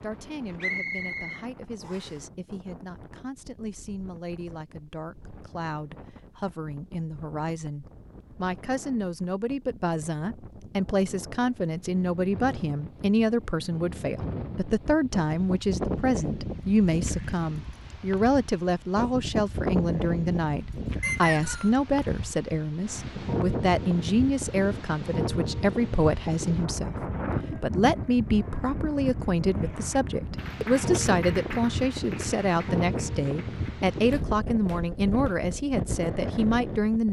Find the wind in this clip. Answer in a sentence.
You can hear the wind from 0.0 to 37.0 s.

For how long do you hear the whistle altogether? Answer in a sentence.
The whistle can be heard for 2 seconds in total.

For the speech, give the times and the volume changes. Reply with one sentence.
The speech can be heard from 0.0 to 37.0 s, getting louder.